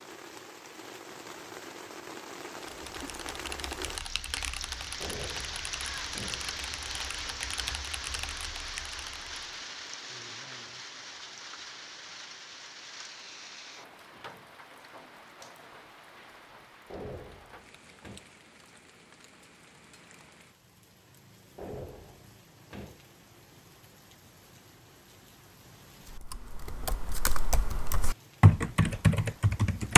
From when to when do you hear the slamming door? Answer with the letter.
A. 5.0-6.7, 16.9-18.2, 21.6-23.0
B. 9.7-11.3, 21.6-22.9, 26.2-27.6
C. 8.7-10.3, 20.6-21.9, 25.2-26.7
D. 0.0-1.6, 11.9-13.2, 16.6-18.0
A.